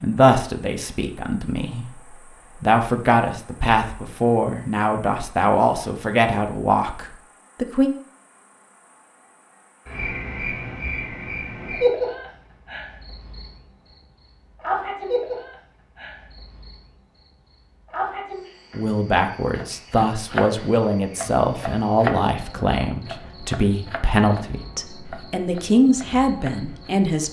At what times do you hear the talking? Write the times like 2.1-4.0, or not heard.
0.0-7.9, 18.7-27.2.